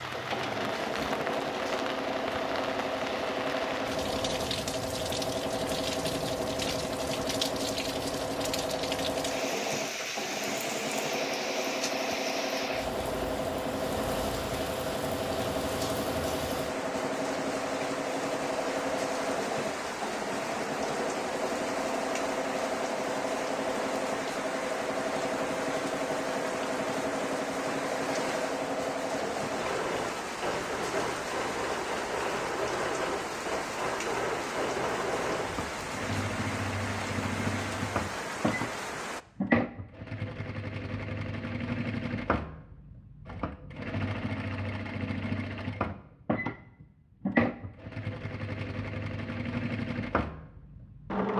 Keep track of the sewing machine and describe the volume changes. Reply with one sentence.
The loudness of the sewing machine stays about the same.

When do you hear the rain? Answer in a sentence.
You can hear the rain from 0.0 to 39.2 s.